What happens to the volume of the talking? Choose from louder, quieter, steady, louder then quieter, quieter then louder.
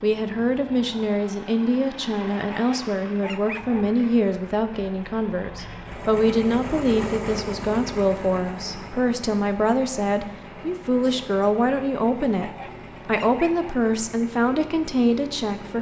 steady.